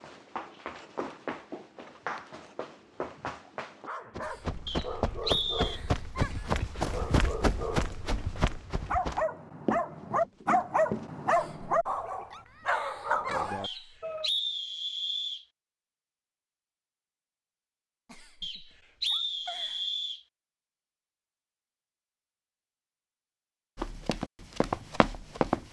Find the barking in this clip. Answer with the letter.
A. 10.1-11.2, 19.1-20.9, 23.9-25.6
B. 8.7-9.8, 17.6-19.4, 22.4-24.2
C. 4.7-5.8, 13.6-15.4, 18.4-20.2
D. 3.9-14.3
D.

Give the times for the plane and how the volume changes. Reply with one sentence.
You can't hear the plane here.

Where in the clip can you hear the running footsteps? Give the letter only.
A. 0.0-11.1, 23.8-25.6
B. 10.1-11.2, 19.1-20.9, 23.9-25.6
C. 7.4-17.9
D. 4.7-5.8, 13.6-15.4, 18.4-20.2
A.